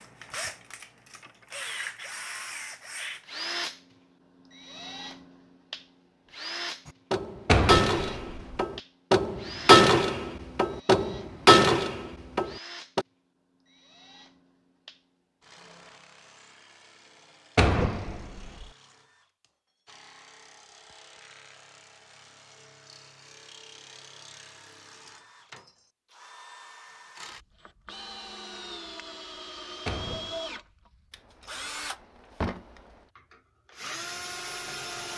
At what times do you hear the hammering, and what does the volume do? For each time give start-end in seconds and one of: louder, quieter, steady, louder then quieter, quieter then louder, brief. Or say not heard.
6.8-13.1 louder then quieter.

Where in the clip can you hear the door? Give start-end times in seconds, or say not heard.
7.5-8.6, 17.6-18.6, 29.9-30.4.